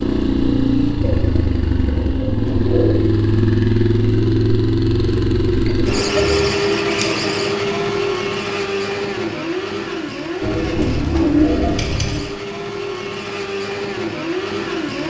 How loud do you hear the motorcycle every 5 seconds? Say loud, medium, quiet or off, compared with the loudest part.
loud, loud, medium.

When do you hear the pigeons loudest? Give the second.
11 s.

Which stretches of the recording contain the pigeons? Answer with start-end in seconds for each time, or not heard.
1.0-2.9, 5.7-7.5, 10.4-12.2.